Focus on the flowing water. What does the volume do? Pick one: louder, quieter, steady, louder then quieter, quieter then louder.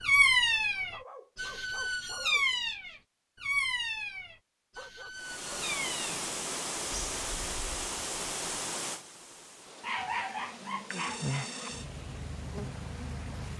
quieter.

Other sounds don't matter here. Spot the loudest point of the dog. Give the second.
10 s.